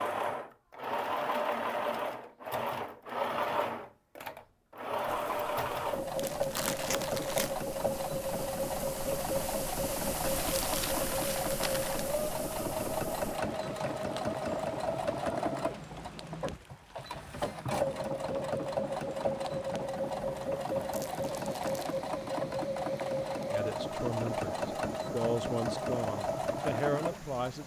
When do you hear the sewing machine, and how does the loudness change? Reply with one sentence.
You can hear the sewing machine from 0.0 to 27.6 s, at a steady volume.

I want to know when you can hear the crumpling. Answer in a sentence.
The crumpling can be heard from 6.2 to 7.5 s, from 10.4 to 12.1 s and from 20.9 to 22.0 s.